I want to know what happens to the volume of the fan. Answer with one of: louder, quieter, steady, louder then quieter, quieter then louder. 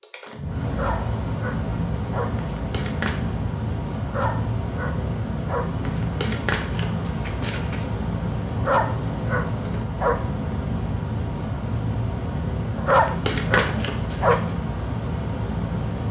steady.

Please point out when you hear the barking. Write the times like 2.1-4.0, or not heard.
0.7-2.3, 4.0-5.7, 8.6-10.2, 12.8-14.4.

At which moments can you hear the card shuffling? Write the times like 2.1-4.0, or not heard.
2.5-3.4, 5.8-7.8, 12.8-14.5.